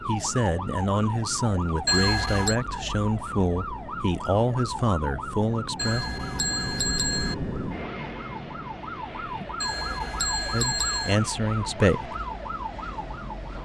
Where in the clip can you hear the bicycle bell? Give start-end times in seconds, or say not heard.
1.9-2.5, 5.8-7.3, 9.6-11.2.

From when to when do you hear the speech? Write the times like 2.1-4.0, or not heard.
0.1-6.0, 10.5-12.2.